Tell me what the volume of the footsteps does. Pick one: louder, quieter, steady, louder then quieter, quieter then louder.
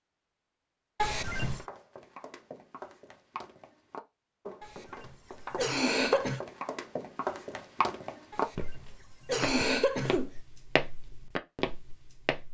louder.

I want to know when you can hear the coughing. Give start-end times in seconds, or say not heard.
0.9-1.6, 4.6-6.4, 8.3-10.3.